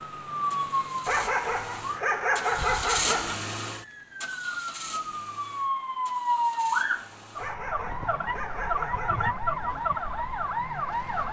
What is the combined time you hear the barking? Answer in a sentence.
You can hear the barking for 4 seconds altogether.